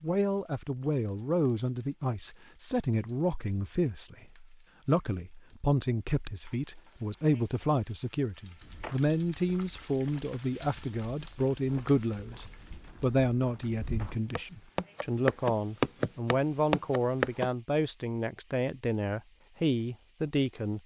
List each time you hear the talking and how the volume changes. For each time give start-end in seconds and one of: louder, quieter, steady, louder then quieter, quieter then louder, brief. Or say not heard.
0.0-20.8 steady.